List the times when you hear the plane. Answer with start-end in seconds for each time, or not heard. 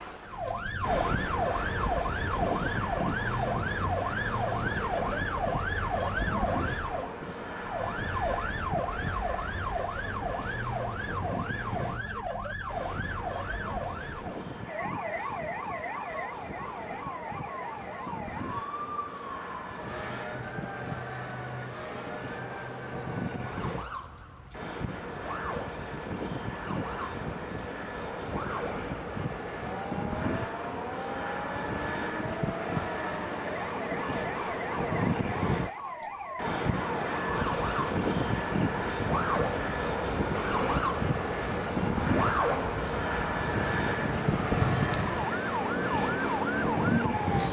0.0-47.4.